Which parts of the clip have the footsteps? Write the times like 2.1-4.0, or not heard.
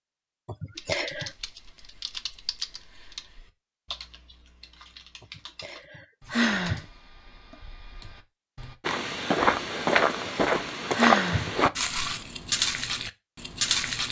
8.8-14.0.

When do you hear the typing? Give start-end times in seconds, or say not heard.
0.8-8.8.